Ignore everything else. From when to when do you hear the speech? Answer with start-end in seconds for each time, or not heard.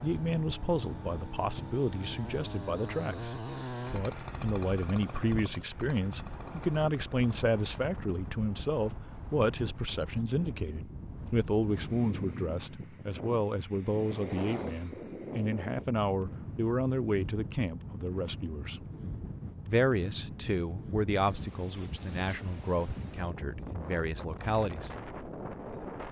0.0-18.9, 19.6-24.9.